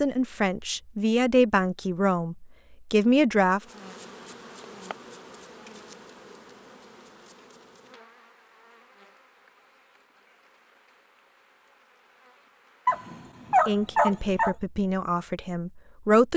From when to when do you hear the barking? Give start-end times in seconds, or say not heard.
12.8-14.6.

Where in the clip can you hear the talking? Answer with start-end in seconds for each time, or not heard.
0.0-3.6, 13.7-16.3.